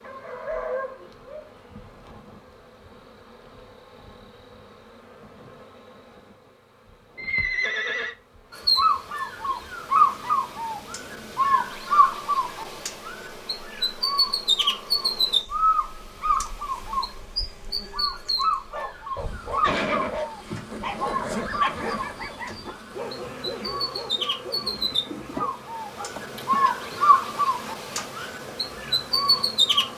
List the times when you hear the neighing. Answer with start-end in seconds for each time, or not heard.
7.2-8.2, 19.6-22.0.